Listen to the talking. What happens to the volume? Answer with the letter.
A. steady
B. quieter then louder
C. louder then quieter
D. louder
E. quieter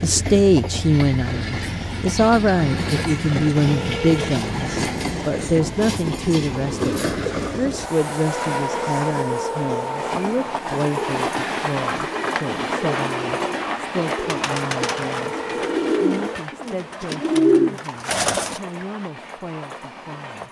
E.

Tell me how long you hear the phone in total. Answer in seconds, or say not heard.
3 s.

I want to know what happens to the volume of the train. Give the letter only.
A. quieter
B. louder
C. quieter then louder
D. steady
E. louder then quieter
A.